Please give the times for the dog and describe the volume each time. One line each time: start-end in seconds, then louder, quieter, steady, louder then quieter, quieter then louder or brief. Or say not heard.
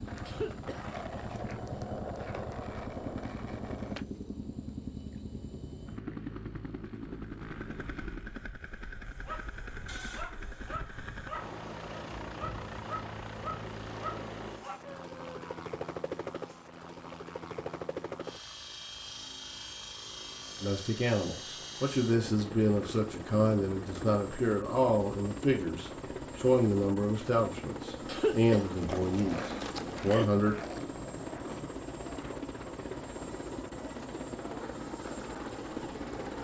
9.2-15.6 steady.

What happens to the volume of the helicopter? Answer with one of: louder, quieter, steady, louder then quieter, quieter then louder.
steady.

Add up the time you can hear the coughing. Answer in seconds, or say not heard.
3 s.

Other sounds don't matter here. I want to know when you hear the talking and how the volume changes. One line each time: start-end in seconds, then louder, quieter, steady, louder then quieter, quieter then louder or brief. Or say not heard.
20.6-30.6 steady.